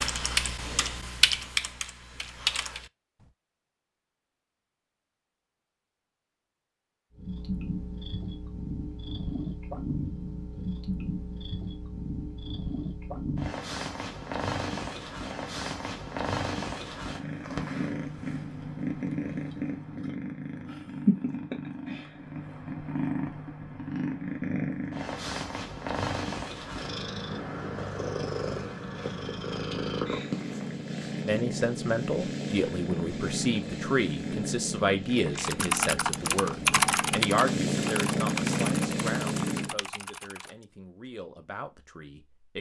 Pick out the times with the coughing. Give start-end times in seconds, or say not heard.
not heard.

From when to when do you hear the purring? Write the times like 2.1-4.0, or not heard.
7.2-39.8.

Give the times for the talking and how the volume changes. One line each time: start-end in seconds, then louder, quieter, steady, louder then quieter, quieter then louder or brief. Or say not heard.
31.2-42.5 quieter.